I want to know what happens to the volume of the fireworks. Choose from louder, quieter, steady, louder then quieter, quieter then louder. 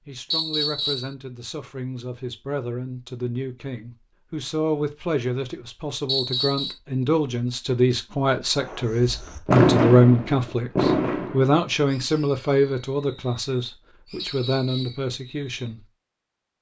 quieter.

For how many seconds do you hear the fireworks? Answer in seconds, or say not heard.
7 s.